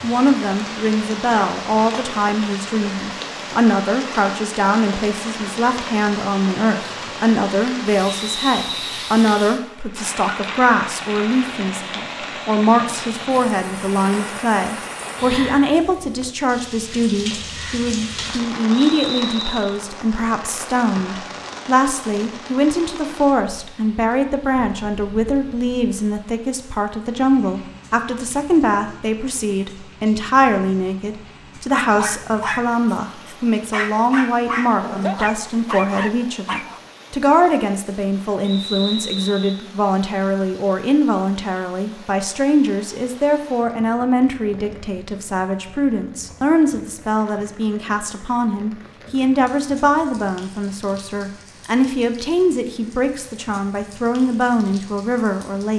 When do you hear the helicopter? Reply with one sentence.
The helicopter can't be heard in this clip.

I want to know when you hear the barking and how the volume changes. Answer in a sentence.
You can hear the barking from 31.8 to 36.8 s, at a steady volume.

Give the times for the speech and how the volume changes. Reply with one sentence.
The speech can be heard from 0.0 to 55.7 s, at a steady volume.